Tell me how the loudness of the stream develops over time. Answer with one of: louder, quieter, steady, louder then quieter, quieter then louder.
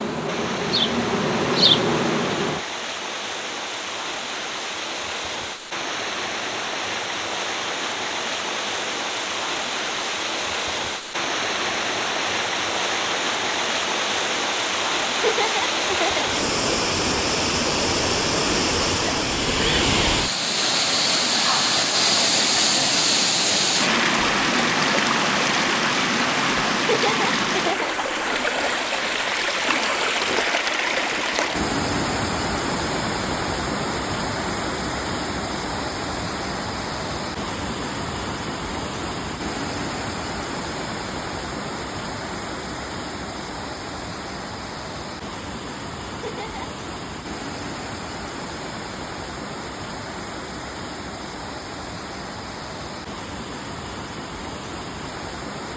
louder then quieter.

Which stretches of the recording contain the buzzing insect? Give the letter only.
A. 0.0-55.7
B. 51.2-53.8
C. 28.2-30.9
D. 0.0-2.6
D.